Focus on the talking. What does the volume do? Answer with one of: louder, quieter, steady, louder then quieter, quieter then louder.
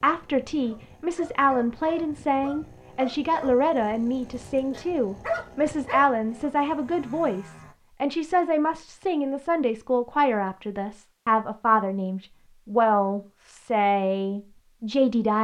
steady.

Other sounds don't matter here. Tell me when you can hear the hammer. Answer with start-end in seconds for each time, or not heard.
not heard.